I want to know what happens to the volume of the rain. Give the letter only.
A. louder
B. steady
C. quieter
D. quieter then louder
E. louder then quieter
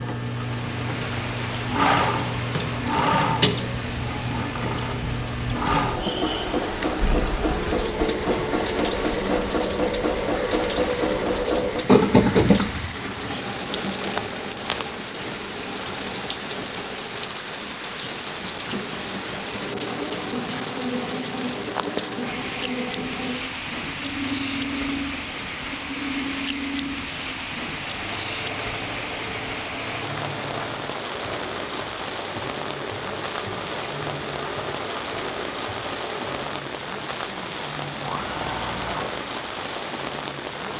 B.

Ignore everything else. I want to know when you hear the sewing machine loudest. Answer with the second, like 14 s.
12 s.